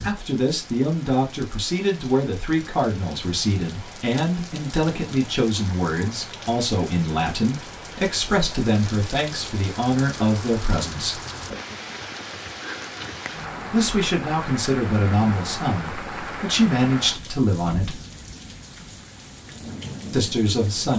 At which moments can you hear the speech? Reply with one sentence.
The speech can be heard from 0.0 to 11.2 s, from 13.7 to 18.0 s and from 20.1 to 20.9 s.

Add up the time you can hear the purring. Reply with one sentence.
The purring can't be heard in this clip.